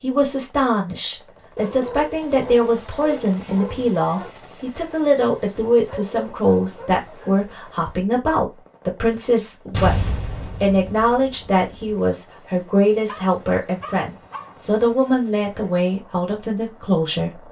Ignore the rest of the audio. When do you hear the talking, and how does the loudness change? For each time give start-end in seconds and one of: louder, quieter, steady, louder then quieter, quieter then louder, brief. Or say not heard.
0.0-17.4 steady.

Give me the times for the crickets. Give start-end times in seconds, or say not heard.
not heard.